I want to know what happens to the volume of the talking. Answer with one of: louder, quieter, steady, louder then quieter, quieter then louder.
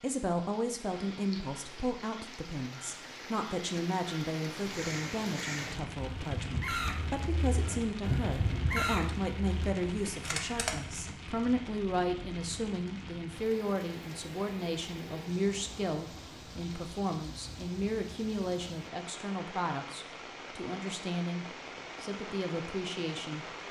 steady.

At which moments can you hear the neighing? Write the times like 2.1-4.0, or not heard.
not heard.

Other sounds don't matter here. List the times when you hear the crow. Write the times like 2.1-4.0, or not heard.
4.5-10.8.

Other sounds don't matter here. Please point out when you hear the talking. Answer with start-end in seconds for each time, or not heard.
0.0-23.4.